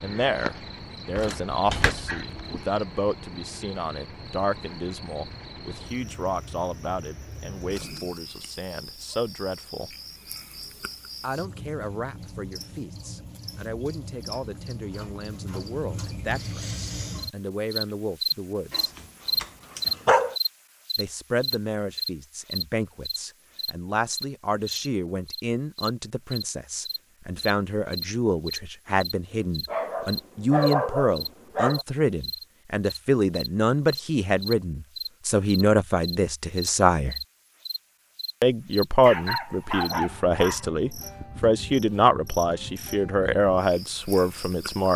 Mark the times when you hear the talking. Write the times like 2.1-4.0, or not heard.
0.0-9.9, 11.2-18.9, 20.9-37.2, 38.4-44.9.